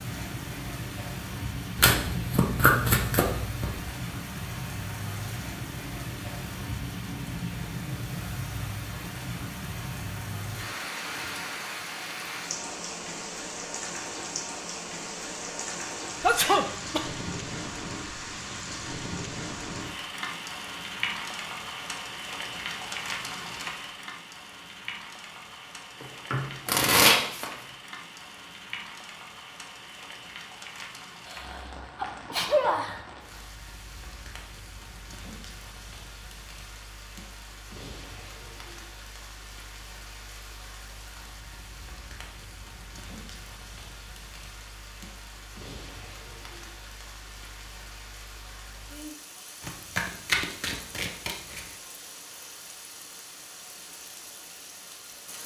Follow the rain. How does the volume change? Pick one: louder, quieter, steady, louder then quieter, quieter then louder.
quieter.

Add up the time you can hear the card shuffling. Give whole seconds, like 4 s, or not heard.
6 s.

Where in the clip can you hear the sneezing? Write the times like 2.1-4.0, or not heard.
16.2-17.1, 31.2-33.0.